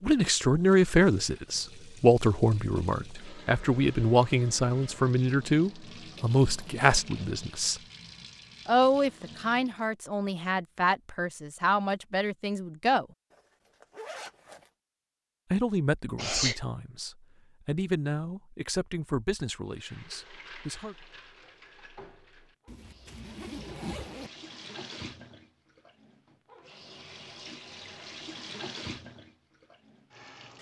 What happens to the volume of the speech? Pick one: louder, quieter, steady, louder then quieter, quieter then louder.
quieter.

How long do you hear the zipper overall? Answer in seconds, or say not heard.
4 s.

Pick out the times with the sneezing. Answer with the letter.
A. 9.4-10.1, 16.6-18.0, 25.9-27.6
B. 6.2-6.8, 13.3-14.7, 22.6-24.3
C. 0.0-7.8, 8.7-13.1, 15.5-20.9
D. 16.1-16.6
D.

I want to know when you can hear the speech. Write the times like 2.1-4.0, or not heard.
0.0-7.8, 8.7-13.1, 15.5-20.9.